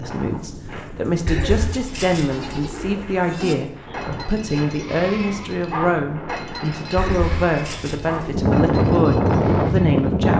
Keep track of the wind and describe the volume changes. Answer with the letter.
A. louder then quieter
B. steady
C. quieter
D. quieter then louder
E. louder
E.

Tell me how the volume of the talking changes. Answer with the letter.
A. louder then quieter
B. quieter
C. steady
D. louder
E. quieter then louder
C.